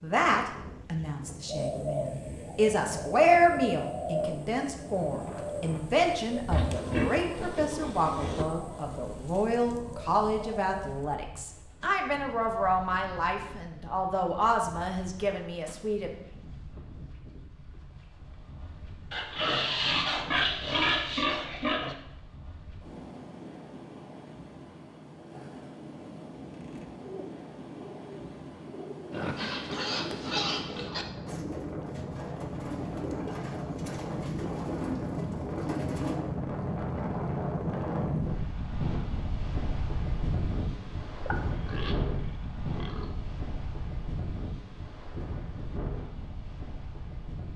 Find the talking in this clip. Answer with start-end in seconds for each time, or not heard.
0.0-16.1.